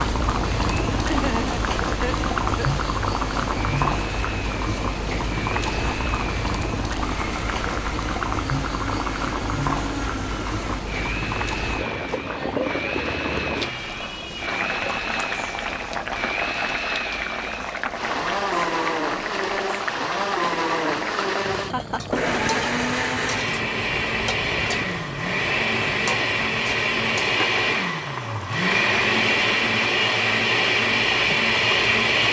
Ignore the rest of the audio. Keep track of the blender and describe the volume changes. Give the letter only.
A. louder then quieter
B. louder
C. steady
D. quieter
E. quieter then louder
B.